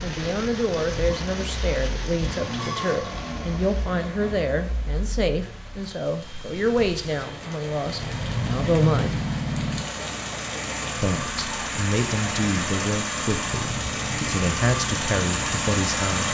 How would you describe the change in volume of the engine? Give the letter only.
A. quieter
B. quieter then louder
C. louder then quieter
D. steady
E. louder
B.